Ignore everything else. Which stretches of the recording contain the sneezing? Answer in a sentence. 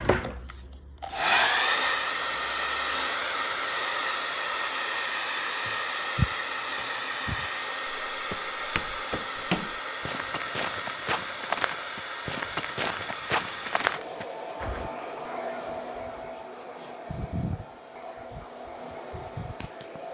The sneezing can't be heard in this clip.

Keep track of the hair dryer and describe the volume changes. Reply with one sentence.
The loudness of the hair dryer goes down.